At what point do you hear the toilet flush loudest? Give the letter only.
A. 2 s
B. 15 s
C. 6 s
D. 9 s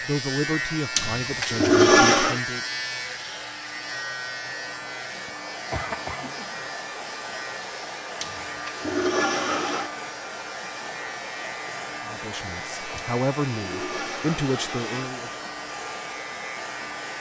A.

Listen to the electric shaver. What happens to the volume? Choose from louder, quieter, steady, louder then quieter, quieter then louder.
quieter.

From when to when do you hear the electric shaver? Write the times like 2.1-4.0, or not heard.
0.0-17.1.